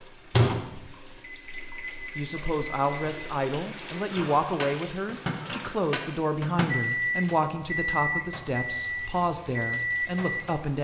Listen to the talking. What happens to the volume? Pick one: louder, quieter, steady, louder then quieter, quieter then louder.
steady.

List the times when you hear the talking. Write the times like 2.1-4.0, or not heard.
2.1-10.7.